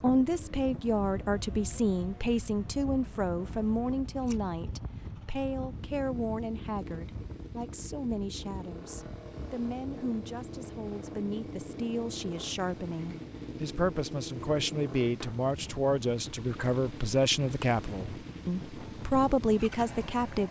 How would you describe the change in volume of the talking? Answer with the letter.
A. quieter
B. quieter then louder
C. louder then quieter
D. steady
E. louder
B.